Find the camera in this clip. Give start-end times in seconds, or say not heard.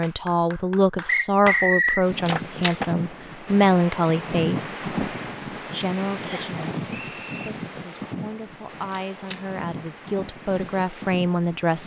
2.2-2.8, 8.9-9.4.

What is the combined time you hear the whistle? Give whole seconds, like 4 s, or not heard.
2 s.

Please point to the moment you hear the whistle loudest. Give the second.
2 s.